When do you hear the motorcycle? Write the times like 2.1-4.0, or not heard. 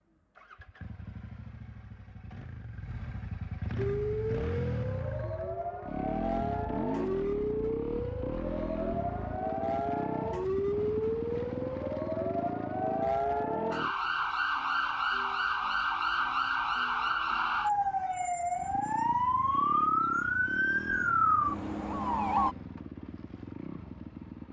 0.0-13.9, 18.6-24.4.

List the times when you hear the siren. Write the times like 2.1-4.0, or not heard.
3.8-22.6.